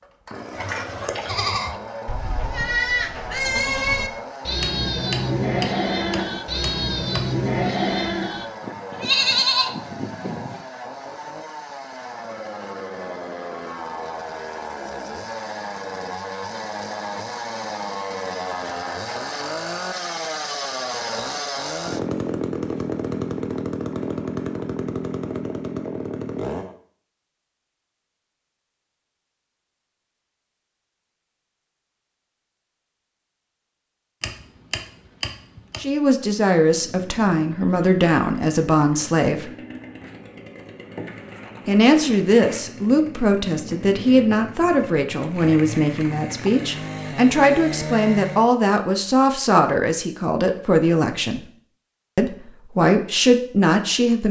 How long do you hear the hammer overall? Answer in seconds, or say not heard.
4 s.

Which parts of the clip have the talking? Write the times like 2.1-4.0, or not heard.
35.8-39.5, 41.6-51.5, 52.1-54.2.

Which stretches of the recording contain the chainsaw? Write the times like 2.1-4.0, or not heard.
0.0-26.8, 36.7-48.5.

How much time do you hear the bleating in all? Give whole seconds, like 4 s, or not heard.
10 s.